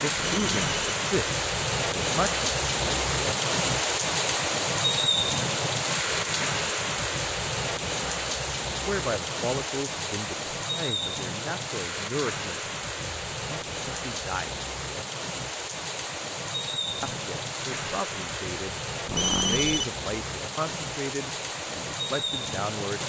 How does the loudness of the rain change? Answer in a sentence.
The volume of the rain goes down.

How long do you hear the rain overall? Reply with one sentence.
You can hear the rain for 23 seconds altogether.